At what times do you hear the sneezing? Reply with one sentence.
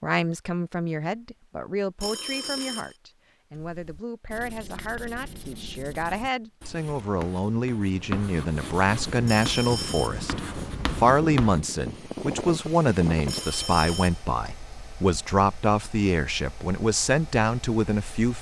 The sneezing can't be heard in this clip.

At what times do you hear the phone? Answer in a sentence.
The phone can be heard from 2.0 to 3.0 s, from 9.2 to 10.2 s and from 13.2 to 14.2 s.